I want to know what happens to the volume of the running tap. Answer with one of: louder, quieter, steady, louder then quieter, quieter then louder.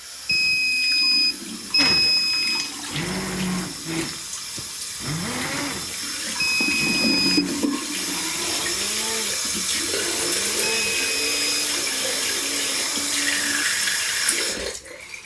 louder.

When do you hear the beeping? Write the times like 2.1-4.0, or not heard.
0.2-2.7, 6.4-7.5, 10.6-11.7.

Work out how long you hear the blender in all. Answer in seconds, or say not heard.
12 s.